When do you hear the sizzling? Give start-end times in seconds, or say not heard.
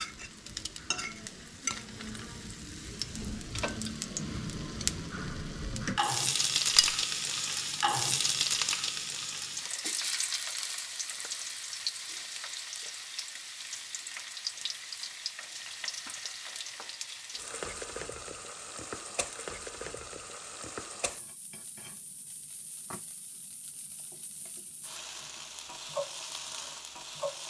0.0-27.4.